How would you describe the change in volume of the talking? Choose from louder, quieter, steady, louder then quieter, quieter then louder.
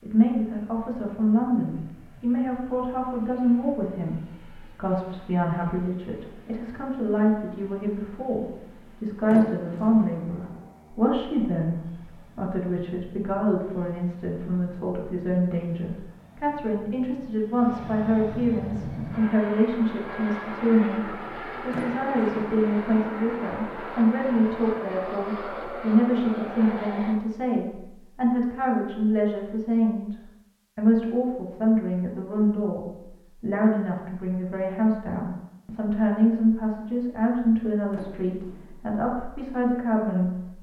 steady.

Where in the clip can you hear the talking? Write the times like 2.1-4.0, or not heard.
0.0-30.1, 30.8-40.3.